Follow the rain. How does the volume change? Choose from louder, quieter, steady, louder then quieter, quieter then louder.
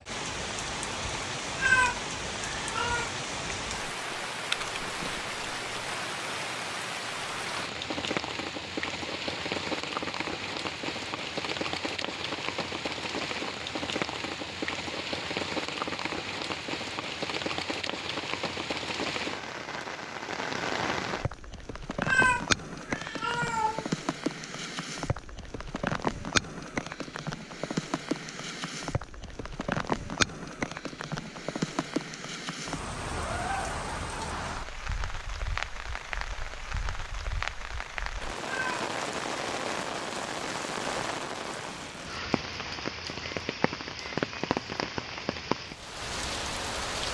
steady.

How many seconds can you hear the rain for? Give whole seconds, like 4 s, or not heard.
47 s.